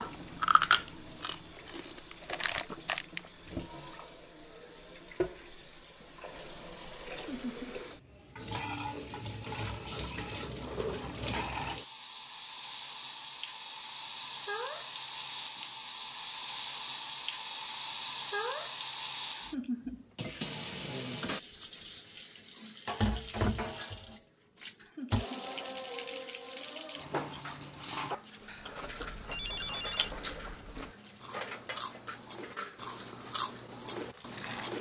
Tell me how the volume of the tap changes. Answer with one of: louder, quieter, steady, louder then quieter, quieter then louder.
louder then quieter.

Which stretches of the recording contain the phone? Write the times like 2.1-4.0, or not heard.
28.4-30.1.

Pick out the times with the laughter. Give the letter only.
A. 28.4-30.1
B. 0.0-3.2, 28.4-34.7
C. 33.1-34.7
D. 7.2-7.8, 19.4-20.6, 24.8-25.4
D.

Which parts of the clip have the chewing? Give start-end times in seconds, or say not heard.
0.0-3.2, 28.4-34.7.